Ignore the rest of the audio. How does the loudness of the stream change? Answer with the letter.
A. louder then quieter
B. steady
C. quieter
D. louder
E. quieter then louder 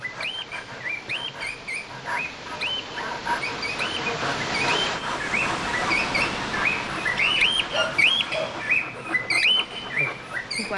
A.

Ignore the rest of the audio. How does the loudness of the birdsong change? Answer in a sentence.
The loudness of the birdsong goes up.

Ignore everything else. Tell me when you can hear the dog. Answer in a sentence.
The dog can be heard from 7.7 to 8.7 s.